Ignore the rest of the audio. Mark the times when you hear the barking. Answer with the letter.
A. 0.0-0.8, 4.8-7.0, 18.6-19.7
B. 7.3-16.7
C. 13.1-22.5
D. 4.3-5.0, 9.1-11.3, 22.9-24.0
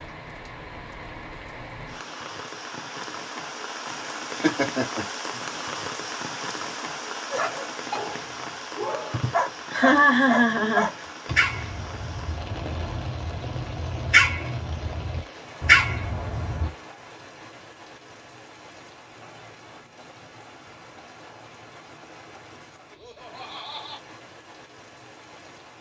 B.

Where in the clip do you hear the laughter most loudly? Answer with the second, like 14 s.
10 s.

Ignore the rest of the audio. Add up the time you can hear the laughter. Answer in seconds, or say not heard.
4 s.